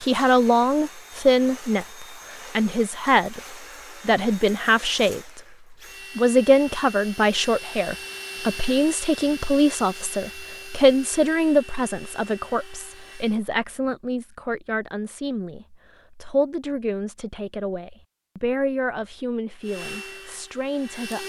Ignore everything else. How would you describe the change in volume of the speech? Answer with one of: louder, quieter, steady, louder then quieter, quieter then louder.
quieter.